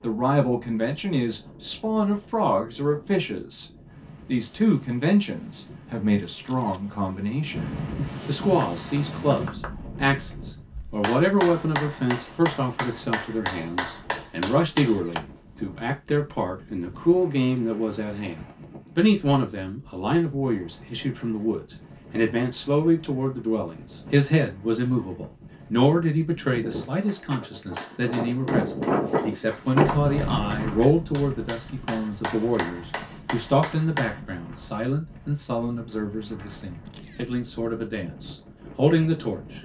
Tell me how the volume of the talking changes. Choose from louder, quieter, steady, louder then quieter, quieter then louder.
steady.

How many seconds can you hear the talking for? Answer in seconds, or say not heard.
39 s.